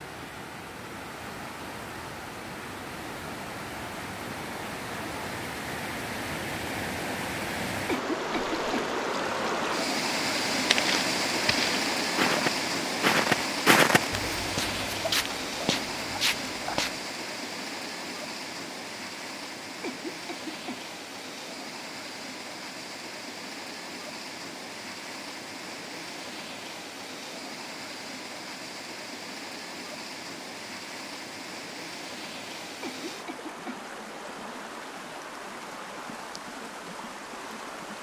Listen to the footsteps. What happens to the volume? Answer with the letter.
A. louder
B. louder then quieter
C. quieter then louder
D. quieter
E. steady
B.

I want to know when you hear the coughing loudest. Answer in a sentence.
The loudest moment of the coughing is at 8 seconds.